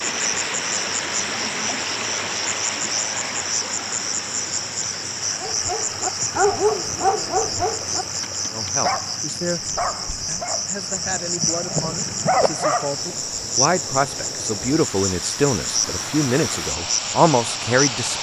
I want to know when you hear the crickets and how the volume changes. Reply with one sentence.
The crickets can be heard from 0.0 to 18.1 s, at a steady volume.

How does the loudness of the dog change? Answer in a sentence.
The volume of the dog goes down, then up.